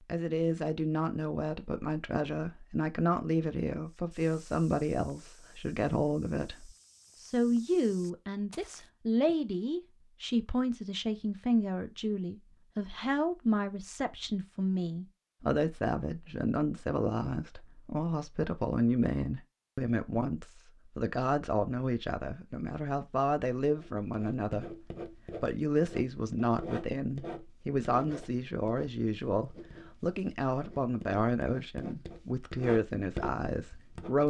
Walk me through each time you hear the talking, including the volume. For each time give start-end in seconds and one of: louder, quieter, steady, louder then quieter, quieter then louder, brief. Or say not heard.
0.1-34.2 steady.